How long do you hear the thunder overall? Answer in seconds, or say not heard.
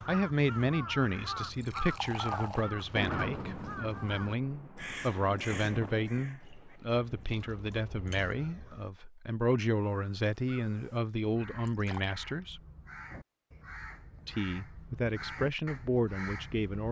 4 s.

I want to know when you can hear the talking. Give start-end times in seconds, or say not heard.
0.0-12.6, 14.2-16.8.